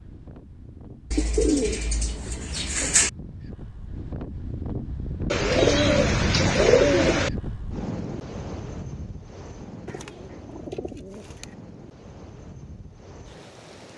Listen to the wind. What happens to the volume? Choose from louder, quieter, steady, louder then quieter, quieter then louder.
louder then quieter.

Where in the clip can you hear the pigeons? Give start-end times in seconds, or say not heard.
1.1-3.1, 5.3-7.3, 9.8-11.4.